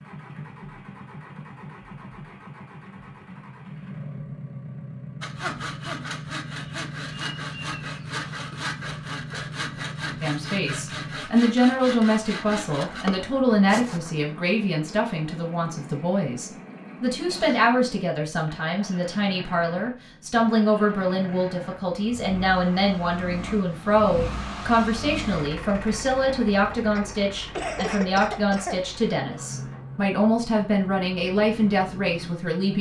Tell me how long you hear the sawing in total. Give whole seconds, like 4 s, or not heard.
9 s.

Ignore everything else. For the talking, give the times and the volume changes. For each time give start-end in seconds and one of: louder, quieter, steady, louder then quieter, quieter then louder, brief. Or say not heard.
10.2-32.7 steady.